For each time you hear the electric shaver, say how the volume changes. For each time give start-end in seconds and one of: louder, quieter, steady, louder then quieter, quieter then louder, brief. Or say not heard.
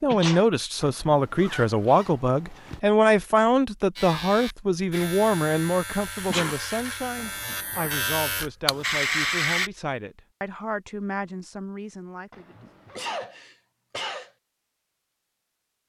4.0-9.7 louder.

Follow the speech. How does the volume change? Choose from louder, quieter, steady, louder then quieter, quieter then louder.
quieter.